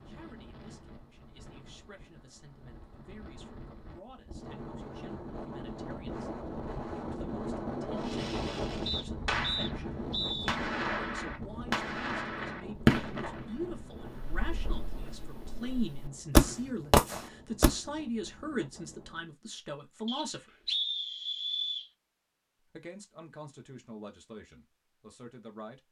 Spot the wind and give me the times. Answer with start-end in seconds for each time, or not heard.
0.0-19.4.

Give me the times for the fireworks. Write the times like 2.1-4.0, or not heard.
8.0-9.8, 10.4-17.8.